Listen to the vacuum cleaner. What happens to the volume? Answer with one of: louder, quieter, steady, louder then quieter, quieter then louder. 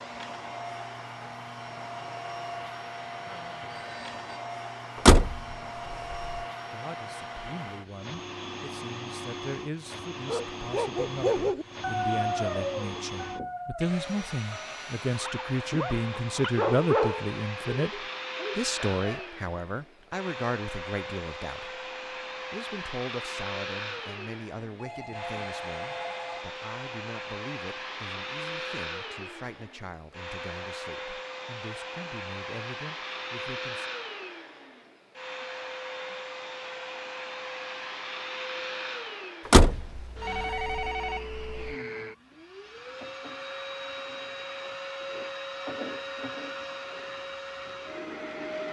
steady.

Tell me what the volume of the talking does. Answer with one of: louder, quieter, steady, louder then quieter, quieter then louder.
louder then quieter.